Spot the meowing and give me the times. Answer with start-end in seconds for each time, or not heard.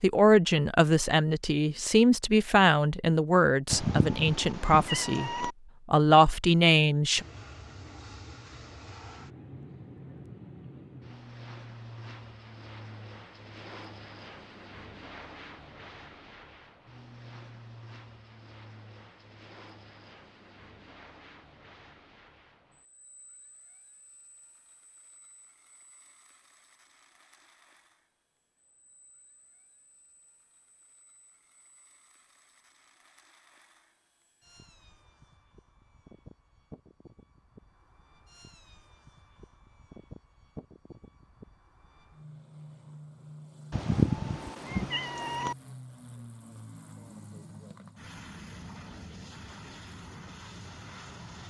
3.7-5.5, 43.7-45.5.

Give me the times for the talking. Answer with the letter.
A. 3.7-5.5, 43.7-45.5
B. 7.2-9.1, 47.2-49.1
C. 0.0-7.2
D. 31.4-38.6
C.